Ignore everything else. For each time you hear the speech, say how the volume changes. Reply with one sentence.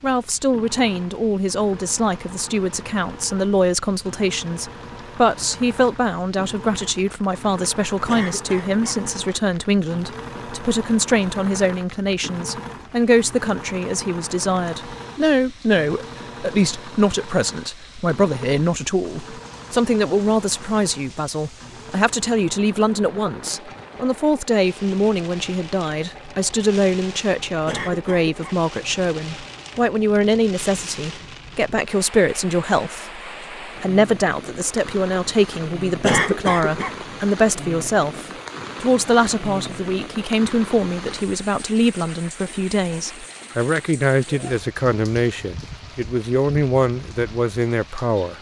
The speech can be heard from 0.0 to 48.3 s, at a steady volume.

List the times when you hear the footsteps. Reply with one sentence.
The footsteps can't be heard in this clip.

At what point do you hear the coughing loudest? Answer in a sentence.
The loudest moment of the coughing is at 36 seconds.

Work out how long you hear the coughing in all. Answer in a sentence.
The coughing can be heard for 3 seconds in total.